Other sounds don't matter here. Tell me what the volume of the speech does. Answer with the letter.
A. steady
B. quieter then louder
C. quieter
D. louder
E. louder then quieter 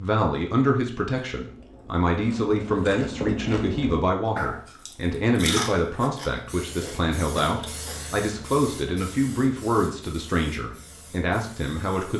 A.